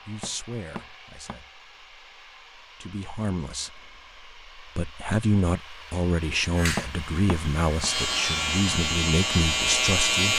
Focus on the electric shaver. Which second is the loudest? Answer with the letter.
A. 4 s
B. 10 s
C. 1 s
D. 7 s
B.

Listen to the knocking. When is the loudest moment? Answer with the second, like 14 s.
7 s.